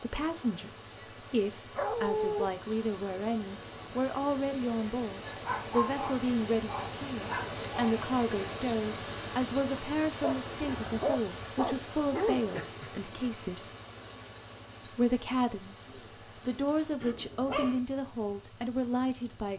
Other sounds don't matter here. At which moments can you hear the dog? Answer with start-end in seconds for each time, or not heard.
1.8-2.5, 5.4-8.0, 10.2-12.9, 17.0-17.8.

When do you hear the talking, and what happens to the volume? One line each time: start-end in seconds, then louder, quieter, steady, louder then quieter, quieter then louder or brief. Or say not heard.
0.0-13.8 steady
14.8-19.5 steady.